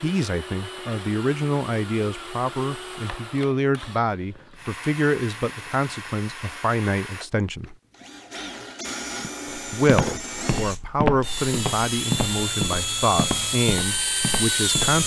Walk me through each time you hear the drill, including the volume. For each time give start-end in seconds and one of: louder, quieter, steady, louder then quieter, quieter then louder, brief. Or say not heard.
0.0-15.0 louder.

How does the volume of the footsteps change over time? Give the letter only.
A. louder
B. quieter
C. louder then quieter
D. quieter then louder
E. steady
B.